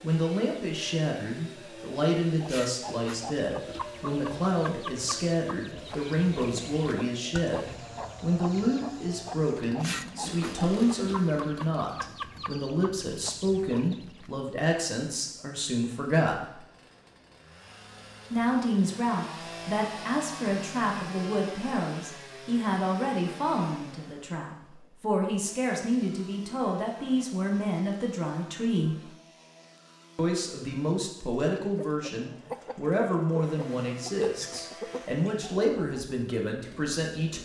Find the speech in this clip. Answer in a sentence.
You can hear the speech from 0.0 to 16.6 s, from 18.3 to 29.1 s and from 30.1 to 37.4 s.